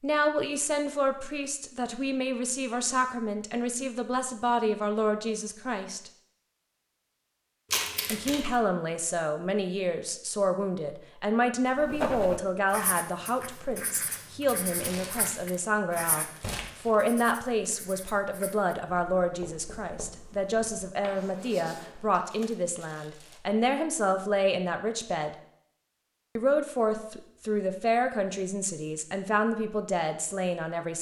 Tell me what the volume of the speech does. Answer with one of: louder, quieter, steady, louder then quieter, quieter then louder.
steady.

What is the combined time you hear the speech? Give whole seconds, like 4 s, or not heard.
28 s.